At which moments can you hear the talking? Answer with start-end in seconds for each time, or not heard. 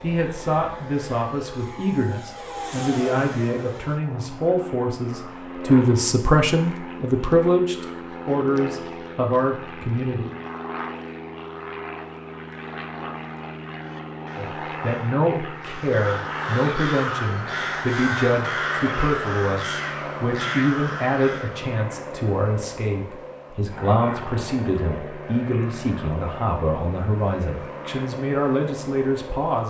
0.0-10.3, 14.3-29.6.